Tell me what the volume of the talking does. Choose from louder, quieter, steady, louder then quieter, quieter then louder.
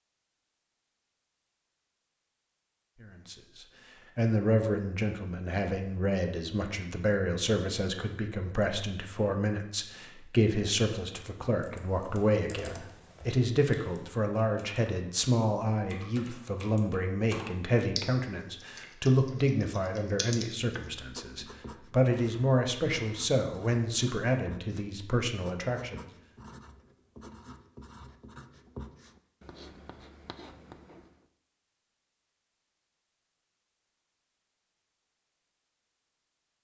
steady.